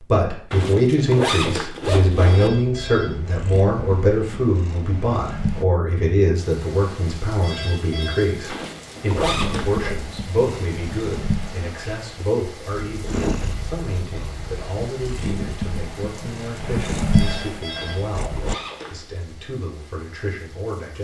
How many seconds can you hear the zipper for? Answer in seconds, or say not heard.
5 s.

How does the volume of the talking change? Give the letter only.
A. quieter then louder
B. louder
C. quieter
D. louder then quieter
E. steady
C.